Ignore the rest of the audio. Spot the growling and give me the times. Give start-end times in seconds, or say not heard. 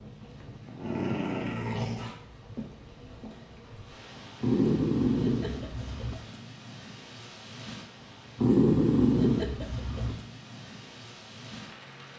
0.2-2.1, 4.4-6.2, 8.3-10.2.